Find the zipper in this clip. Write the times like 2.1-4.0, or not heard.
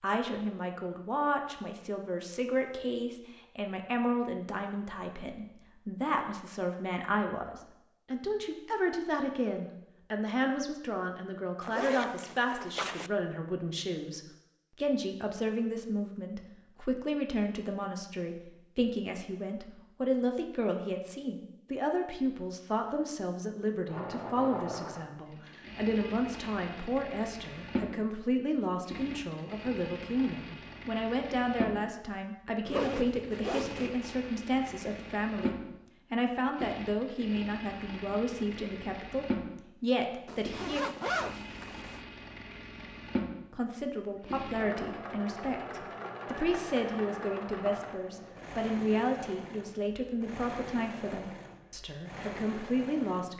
11.6-13.1, 32.6-34.0, 40.2-42.0.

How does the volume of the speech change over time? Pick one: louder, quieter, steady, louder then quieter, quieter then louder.
steady.